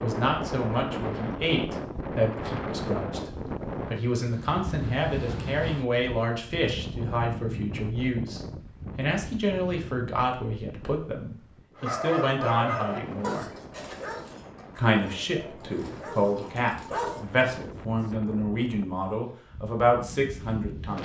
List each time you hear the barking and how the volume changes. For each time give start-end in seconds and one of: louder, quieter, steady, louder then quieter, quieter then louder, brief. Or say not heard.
11.8-17.2 quieter.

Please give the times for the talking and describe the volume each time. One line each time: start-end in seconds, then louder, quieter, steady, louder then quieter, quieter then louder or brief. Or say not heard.
0.0-13.5 steady
14.8-20.9 louder.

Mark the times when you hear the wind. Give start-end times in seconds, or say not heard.
0.0-20.9.